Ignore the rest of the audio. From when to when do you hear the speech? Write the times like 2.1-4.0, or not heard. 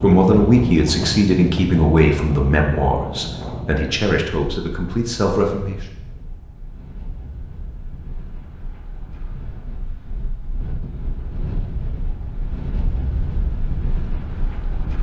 0.0-5.8.